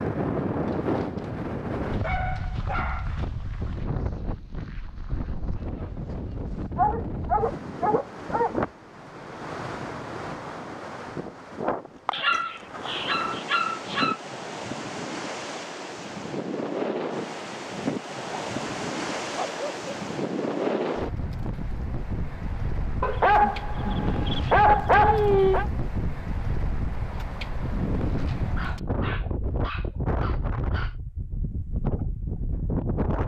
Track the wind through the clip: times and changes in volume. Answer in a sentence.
The wind can be heard from 0.0 to 33.2 s, at a steady volume.